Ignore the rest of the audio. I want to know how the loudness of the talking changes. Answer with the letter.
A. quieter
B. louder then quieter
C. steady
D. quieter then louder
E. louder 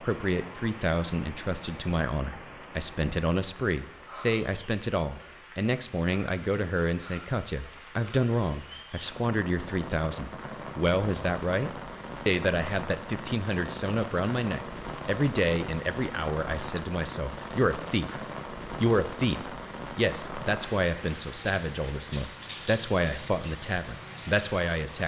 C.